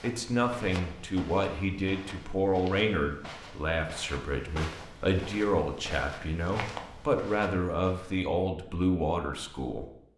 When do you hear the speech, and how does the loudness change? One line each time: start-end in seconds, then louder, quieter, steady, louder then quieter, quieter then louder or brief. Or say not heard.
0.0-9.8 steady.